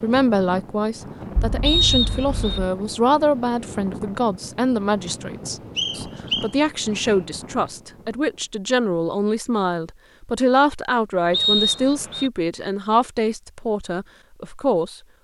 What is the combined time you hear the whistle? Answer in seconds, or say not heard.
3 s.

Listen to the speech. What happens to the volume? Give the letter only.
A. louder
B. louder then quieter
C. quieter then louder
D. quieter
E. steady
E.